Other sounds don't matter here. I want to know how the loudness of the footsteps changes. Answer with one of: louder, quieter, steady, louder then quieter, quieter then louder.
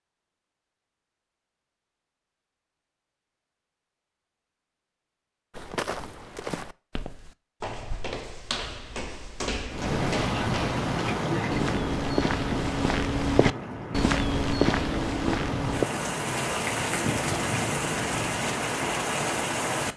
louder.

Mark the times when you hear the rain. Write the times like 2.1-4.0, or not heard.
9.7-19.9.